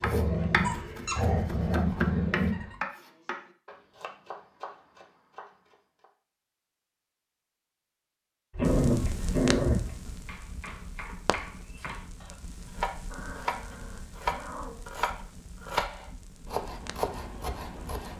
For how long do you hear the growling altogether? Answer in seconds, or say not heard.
6 s.